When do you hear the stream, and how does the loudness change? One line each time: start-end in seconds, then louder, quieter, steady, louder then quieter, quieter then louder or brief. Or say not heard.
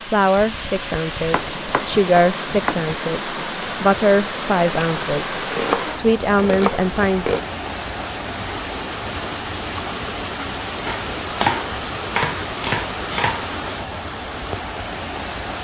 0.0-15.5 steady.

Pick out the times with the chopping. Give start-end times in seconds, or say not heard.
1.3-2.8, 5.5-7.5, 10.8-13.5.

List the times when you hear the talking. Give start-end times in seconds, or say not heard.
0.1-7.4.